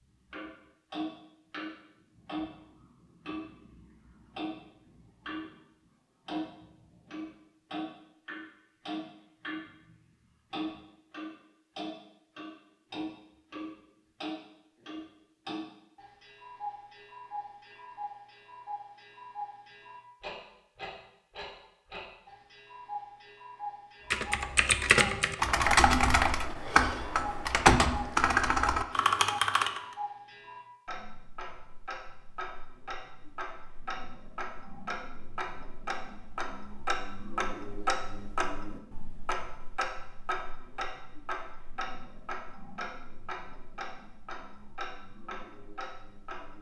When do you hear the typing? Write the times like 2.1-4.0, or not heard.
24.1-29.8.